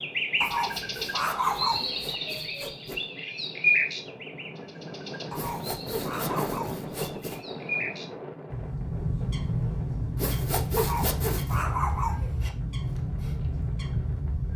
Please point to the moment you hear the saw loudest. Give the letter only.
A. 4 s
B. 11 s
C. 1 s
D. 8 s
B.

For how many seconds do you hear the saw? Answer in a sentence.
The saw can be heard for 6 seconds in total.